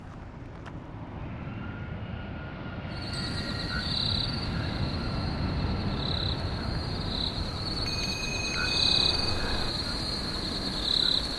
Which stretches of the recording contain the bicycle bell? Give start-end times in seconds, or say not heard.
3.1-3.8, 7.8-9.8.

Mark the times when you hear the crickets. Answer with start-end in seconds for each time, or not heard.
2.9-11.3.